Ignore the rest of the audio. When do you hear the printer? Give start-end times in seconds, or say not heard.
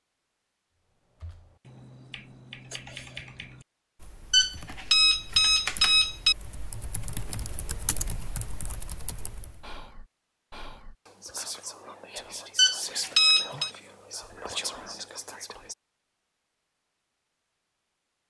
not heard.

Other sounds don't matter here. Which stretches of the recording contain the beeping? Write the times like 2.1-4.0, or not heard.
4.3-6.3, 12.6-13.7.